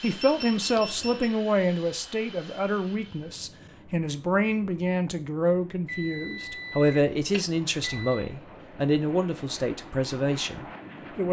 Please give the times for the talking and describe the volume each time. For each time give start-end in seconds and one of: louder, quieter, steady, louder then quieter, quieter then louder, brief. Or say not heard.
0.0-11.2 steady.